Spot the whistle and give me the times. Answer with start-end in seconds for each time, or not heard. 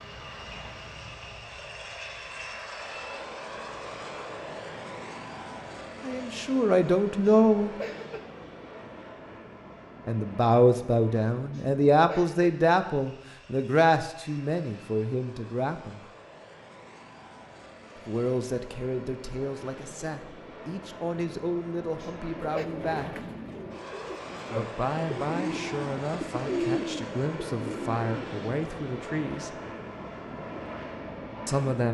not heard.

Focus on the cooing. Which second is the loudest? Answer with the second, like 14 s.
27 s.